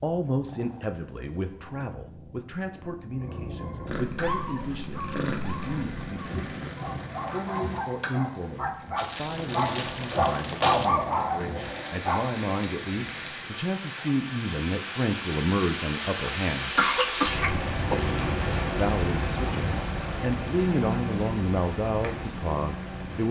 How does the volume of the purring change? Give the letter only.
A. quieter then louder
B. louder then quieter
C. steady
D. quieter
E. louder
E.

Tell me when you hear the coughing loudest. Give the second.
17 s.